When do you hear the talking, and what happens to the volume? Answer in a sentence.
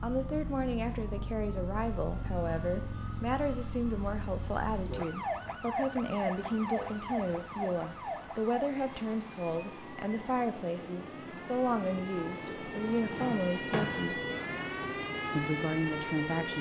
The talking can be heard from 0.0 to 14.2 s, at a steady volume; and briefly from 15.3 to 16.5 s.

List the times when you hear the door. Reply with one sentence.
You can hear the door from 13.1 to 14.1 s.